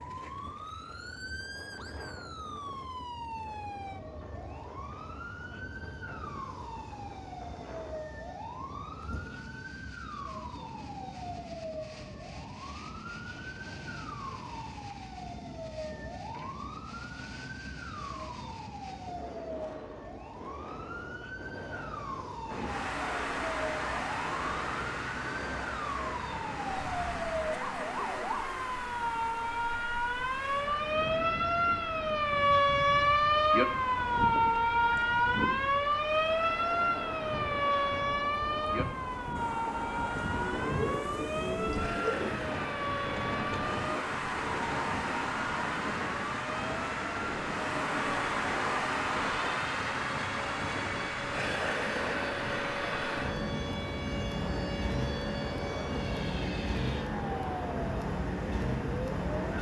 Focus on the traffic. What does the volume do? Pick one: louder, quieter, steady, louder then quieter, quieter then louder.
quieter then louder.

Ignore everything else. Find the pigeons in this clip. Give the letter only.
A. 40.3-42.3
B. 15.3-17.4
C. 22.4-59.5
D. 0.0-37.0
A.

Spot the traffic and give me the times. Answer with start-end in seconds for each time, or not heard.
22.4-59.5.